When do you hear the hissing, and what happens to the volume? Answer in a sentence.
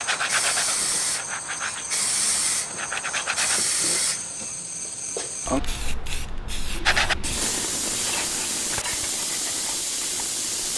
You can hear the hissing from 0.0 to 10.7 s, at a steady volume.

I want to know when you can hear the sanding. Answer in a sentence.
The sanding can be heard from 0.0 to 3.6 s and from 6.8 to 10.7 s.